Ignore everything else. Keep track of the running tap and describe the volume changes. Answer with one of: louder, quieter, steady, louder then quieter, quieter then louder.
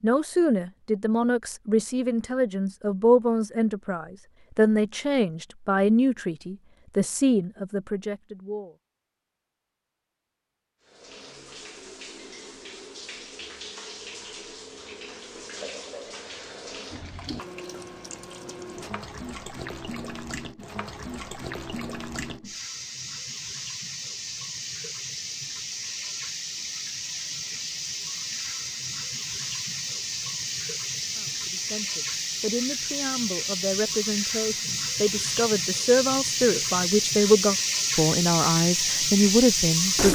louder.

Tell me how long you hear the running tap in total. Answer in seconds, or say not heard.
29 s.